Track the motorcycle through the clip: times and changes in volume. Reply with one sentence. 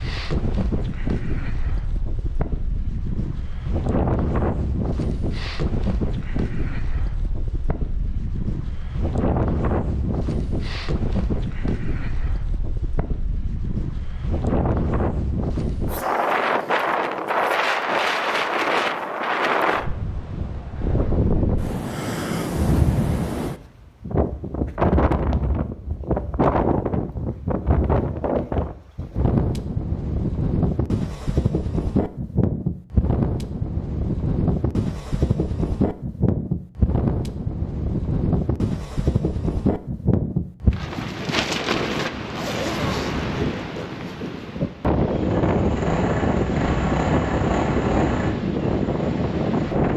You can hear the motorcycle from 45.1 to 49.9 s, getting quieter.